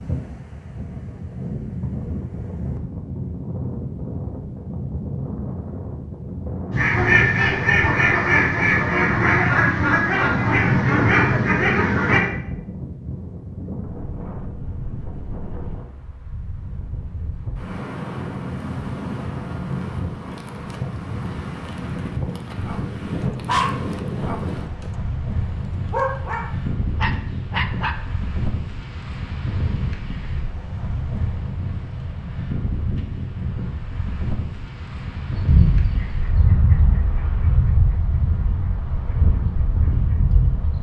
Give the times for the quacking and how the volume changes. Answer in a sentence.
You can hear the quacking from 6.7 to 12.2 s, at a steady volume; and from 35.3 to 40.7 s, getting quieter then louder.